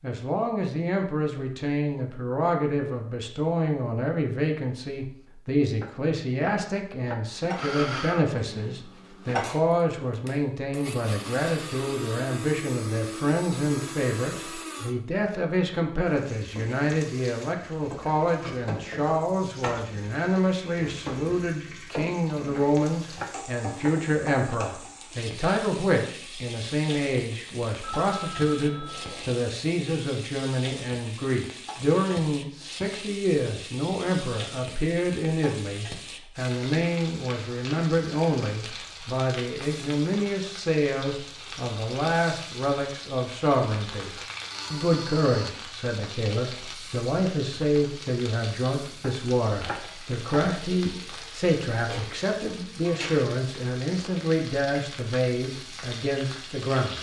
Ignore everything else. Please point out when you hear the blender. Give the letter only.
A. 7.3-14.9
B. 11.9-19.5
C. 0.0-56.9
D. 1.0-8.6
A.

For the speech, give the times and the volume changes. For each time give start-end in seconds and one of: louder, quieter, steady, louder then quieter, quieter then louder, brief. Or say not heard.
0.0-56.9 steady.